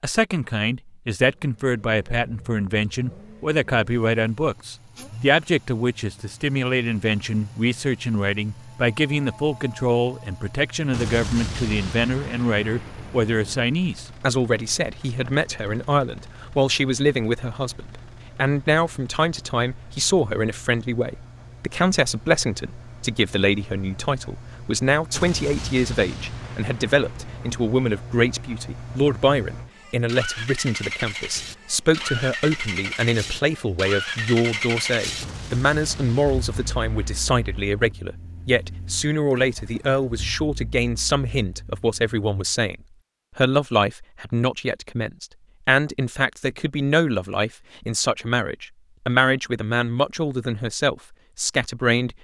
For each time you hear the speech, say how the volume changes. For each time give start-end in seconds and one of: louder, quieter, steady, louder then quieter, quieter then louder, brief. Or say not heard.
0.0-42.8 steady
43.4-52.1 steady.